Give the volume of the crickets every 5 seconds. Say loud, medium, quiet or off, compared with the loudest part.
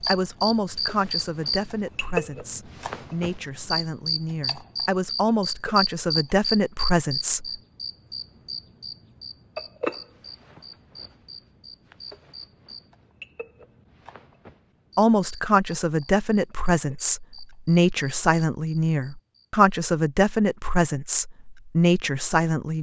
loud, loud, quiet, quiet, off.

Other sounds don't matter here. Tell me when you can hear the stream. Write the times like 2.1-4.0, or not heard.
not heard.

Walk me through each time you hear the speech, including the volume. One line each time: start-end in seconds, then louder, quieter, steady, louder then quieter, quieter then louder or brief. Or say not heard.
0.1-7.5 quieter then louder
14.9-22.7 steady.